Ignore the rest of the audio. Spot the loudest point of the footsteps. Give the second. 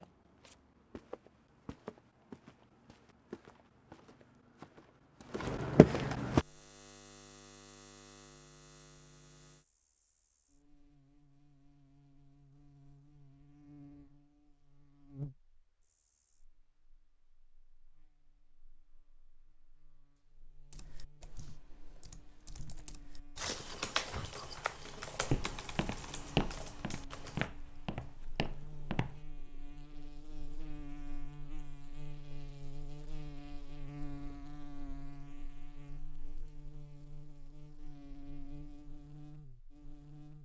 6 s.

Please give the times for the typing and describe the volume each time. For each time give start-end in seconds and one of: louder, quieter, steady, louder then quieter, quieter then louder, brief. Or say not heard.
20.7-27.5 louder then quieter.